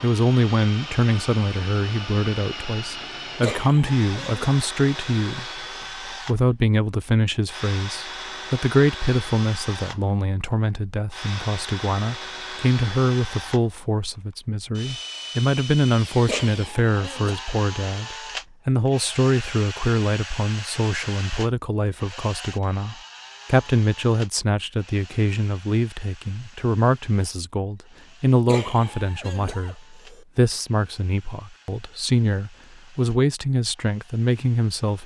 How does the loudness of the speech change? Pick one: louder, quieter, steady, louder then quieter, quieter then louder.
steady.